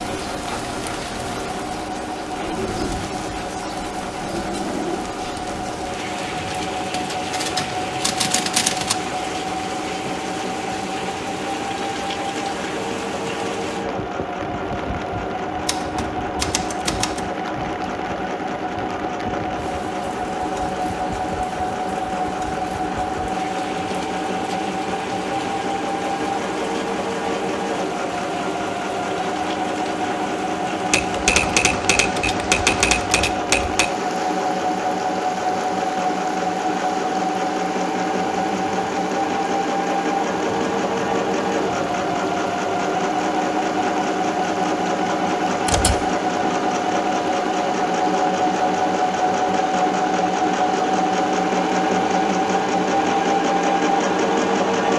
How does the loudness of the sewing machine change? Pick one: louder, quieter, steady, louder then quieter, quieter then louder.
louder.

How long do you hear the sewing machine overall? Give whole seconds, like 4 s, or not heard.
55 s.